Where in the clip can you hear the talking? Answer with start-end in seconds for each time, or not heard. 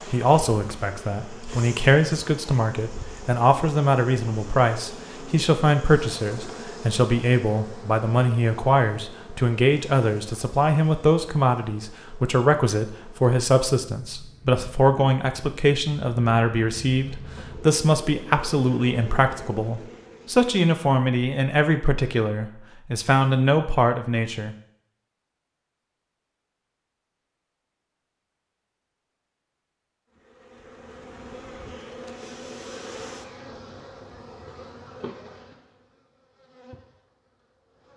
0.1-24.6.